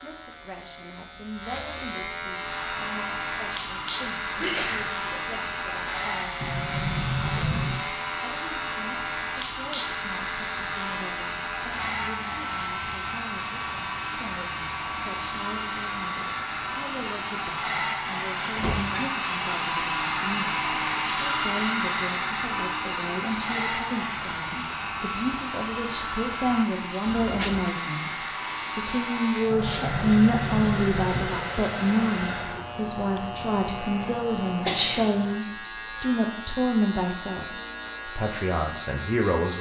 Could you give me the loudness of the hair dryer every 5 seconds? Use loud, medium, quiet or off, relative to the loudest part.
medium, medium, medium, loud, loud, medium, medium, off.